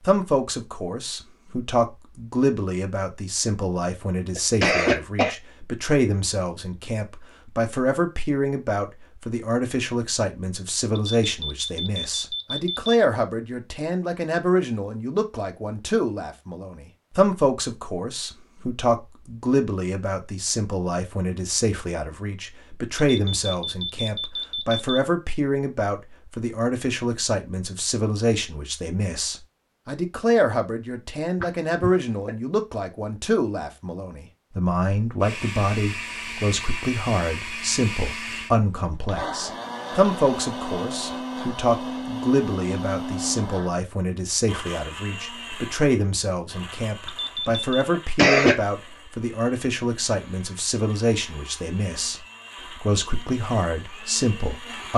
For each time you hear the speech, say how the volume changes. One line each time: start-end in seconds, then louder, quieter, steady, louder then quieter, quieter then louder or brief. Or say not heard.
0.1-54.9 steady.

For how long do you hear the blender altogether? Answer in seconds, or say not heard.
20 s.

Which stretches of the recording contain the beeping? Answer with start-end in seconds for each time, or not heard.
10.9-12.9, 23.1-25.0, 47.0-47.9.